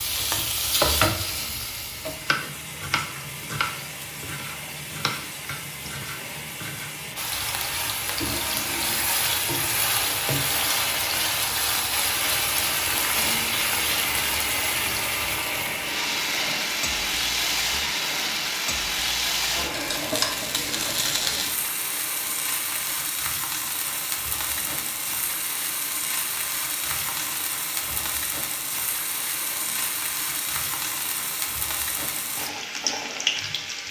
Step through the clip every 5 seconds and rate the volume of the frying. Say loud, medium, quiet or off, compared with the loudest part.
loud, loud, loud, loud, loud, medium, loud.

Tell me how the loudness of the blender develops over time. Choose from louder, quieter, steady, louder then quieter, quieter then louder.
louder then quieter.